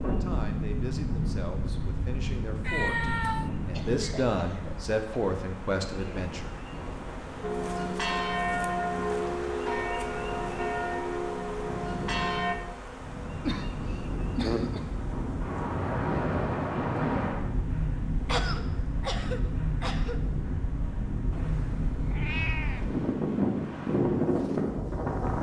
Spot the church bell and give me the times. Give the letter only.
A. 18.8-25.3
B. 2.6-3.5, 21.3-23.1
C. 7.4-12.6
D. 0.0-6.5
C.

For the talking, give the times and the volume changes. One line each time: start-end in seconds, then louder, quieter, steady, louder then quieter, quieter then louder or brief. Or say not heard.
0.0-6.5 louder.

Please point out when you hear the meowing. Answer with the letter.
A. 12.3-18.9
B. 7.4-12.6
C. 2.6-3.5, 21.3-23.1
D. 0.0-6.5
C.